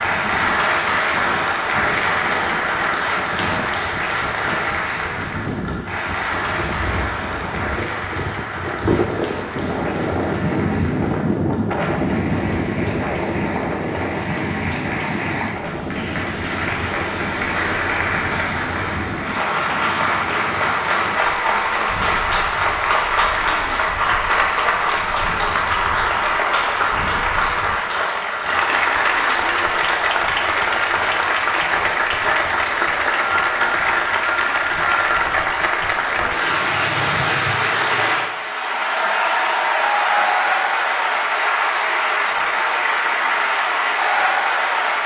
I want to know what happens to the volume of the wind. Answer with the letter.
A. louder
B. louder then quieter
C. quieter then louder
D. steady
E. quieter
B.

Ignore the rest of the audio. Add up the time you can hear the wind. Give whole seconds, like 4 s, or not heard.
28 s.